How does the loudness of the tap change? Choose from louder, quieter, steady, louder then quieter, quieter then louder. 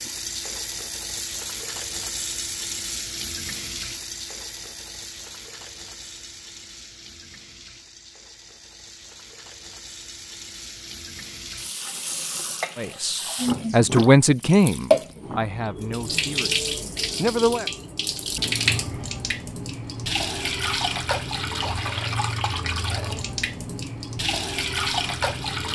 quieter then louder.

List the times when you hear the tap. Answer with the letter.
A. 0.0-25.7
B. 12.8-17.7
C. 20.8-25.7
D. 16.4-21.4
A.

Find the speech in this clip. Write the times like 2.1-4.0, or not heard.
12.8-17.7.